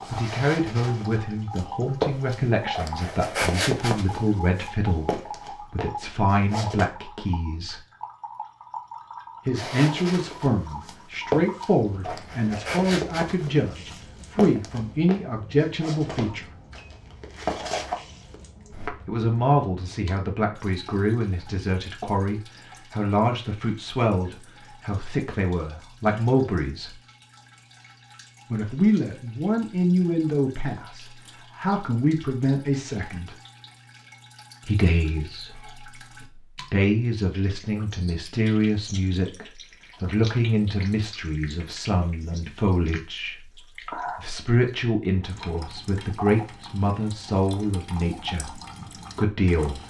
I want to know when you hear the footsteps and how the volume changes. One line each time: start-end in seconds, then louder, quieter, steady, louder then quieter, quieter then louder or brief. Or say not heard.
0.0-6.8 louder then quieter
9.6-18.9 quieter then louder.